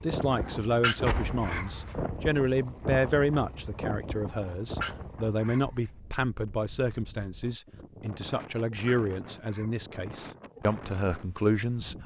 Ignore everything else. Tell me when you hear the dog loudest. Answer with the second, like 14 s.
1 s.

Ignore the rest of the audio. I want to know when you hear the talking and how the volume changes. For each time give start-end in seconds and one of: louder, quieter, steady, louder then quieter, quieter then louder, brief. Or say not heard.
0.0-11.9 steady.